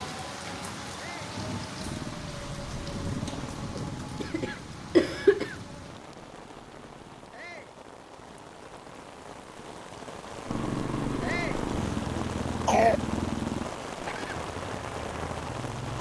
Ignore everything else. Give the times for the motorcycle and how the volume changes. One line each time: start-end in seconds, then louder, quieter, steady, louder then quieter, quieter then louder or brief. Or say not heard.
1.8-7.3 quieter
10.4-15.9 quieter.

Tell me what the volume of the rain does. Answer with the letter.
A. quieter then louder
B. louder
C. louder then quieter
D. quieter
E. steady
A.